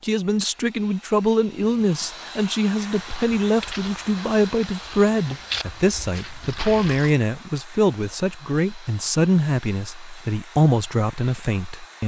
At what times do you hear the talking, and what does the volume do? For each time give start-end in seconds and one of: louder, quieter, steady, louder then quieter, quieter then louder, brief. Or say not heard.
0.0-12.0 steady.